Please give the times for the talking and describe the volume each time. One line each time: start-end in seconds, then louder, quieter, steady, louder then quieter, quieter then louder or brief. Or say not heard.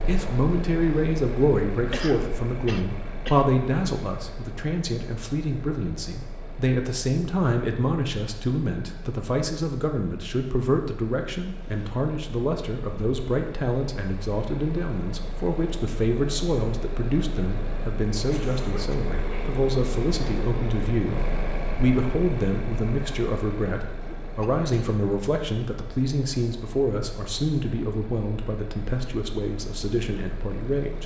0.0-31.0 steady.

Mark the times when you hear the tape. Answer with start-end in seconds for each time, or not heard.
not heard.